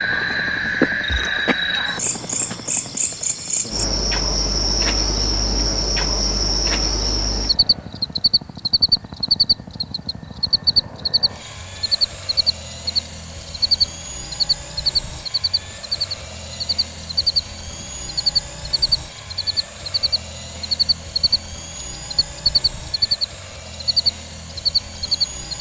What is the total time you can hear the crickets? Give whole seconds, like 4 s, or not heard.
25 s.